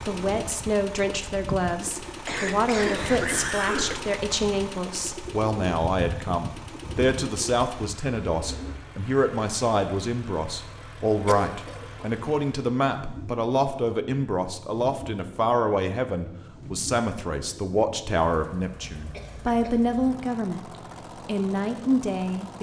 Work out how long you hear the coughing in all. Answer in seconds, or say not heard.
3 s.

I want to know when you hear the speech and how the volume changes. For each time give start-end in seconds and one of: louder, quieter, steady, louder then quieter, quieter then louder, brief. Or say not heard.
0.1-20.6 steady
21.2-22.5 brief.